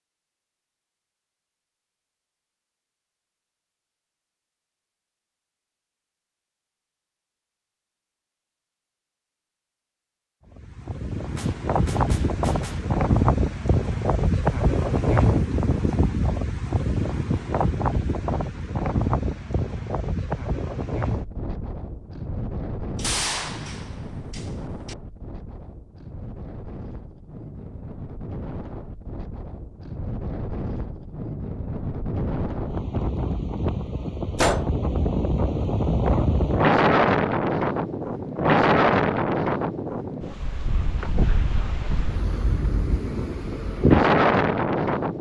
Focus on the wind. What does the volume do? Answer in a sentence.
The loudness of the wind goes down, then up.